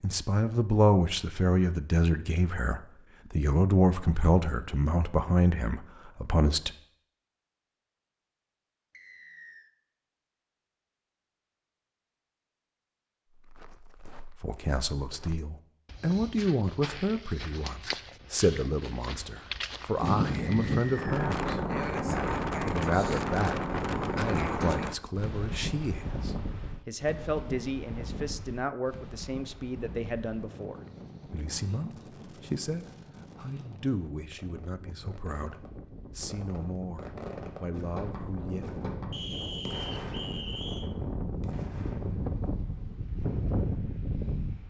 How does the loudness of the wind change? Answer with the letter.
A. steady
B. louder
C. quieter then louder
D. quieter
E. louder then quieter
C.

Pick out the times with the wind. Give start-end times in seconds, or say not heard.
20.0-44.6.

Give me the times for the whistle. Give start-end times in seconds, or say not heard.
8.9-9.7, 20.5-21.1, 39.1-40.9.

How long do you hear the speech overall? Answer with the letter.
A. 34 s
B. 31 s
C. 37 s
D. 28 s
B.